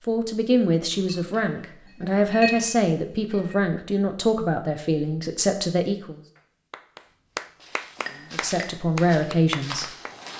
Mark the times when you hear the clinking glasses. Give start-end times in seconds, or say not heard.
0.9-1.4, 2.0-3.5, 8.0-8.8.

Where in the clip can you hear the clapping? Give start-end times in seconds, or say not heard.
6.3-10.2.